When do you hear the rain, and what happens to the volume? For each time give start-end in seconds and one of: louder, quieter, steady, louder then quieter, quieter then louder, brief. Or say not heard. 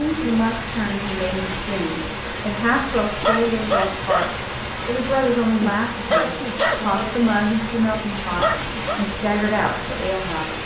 0.0-10.6 steady.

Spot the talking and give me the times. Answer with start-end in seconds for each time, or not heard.
0.0-10.6.